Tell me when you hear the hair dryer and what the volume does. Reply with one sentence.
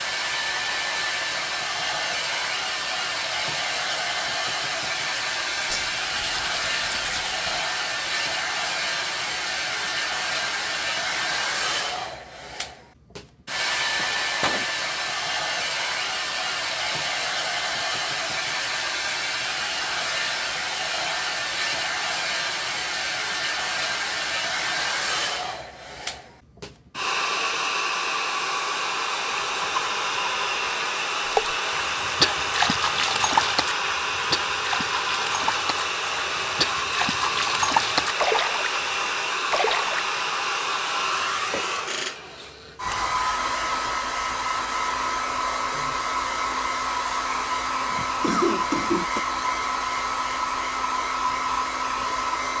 You can hear the hair dryer from 0.0 to 52.5 s, at a steady volume.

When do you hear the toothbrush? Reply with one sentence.
You can hear the toothbrush from 5.7 to 7.6 s.